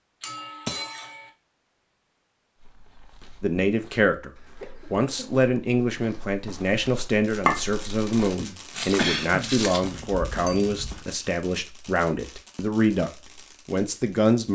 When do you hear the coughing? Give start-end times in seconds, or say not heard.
4.6-5.5, 8.4-9.7.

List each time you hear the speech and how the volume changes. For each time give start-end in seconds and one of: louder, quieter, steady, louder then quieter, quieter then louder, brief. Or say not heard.
3.4-4.3 brief
4.9-14.5 steady.